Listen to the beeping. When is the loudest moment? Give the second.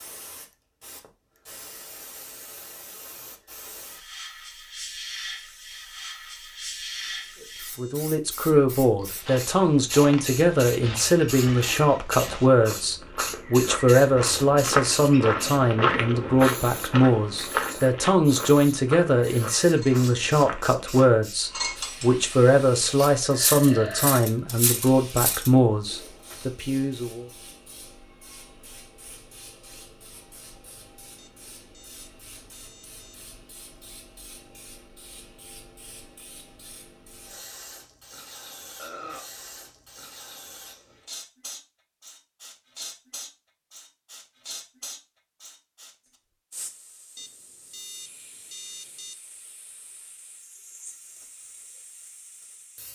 49 s.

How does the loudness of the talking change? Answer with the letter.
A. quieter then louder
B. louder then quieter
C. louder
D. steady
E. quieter
D.